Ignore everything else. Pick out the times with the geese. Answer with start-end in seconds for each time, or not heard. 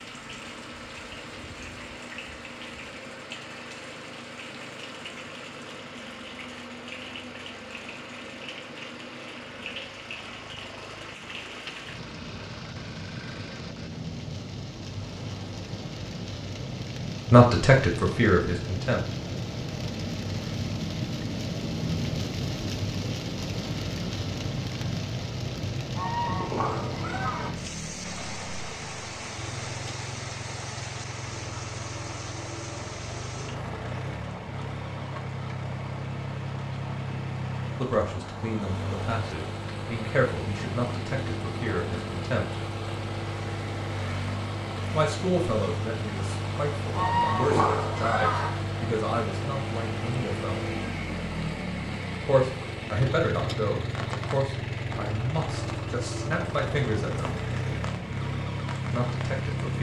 25.9-27.5, 46.9-48.5.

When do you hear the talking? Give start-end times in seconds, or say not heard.
17.3-19.1, 37.8-42.6, 44.9-50.6, 52.2-57.4, 58.9-59.7.